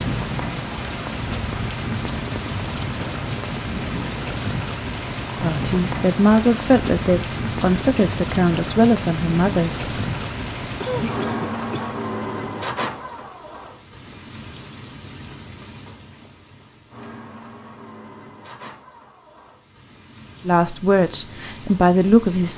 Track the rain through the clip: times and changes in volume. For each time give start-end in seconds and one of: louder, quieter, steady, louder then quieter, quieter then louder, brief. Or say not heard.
0.0-22.5 quieter.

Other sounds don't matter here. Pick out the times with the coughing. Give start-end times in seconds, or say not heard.
10.8-12.0.